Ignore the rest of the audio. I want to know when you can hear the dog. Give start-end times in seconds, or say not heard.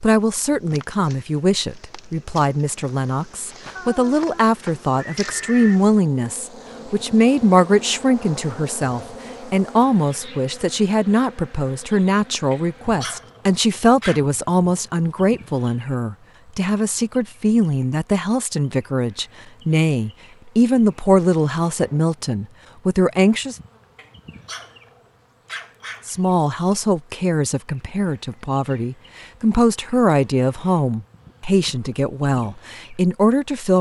12.5-14.2, 23.9-26.2.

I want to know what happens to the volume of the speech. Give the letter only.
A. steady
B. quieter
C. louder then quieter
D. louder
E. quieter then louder
A.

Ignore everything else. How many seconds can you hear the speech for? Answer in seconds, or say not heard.
31 s.